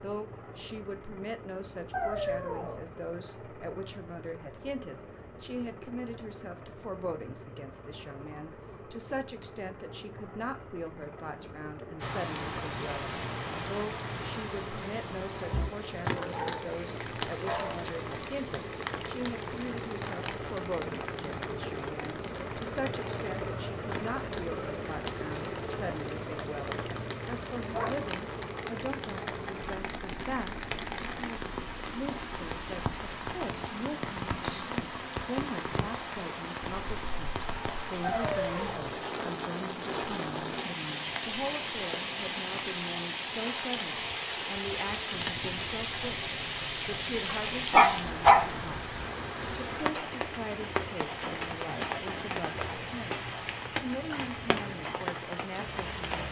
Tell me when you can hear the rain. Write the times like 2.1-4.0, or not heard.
12.0-56.2.